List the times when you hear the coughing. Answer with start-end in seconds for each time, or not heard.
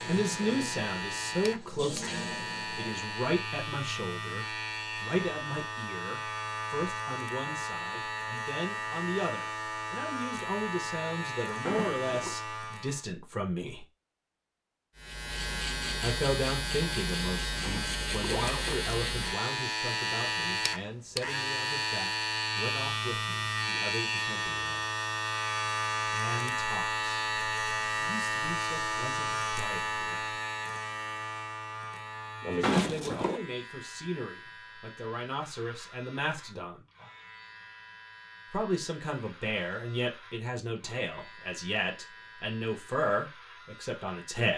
not heard.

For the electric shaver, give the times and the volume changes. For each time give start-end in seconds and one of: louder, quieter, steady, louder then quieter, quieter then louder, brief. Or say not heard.
0.0-13.1 steady
14.9-44.5 quieter.